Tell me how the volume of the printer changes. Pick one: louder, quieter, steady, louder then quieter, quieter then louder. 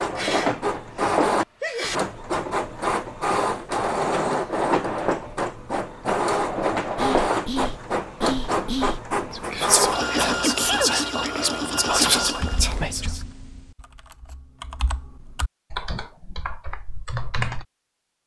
steady.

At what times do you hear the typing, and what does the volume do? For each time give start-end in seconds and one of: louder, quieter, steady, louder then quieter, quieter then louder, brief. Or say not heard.
12.3-17.6 quieter then louder.